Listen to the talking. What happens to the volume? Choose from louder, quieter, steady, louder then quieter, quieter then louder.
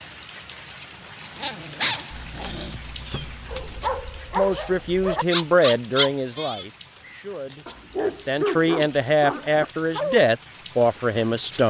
quieter then louder.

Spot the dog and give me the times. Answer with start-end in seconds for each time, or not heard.
1.2-10.2.